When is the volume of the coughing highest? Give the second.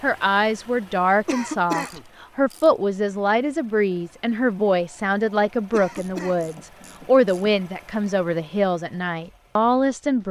2 s.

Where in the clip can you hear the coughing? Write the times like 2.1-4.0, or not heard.
1.2-2.0, 5.7-6.5.